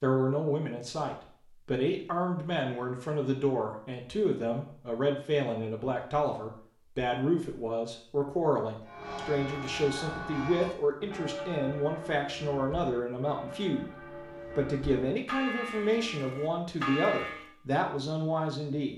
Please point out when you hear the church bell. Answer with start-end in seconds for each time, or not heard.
8.8-17.6.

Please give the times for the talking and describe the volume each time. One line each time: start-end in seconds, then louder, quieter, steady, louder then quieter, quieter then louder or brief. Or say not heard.
0.0-18.9 steady.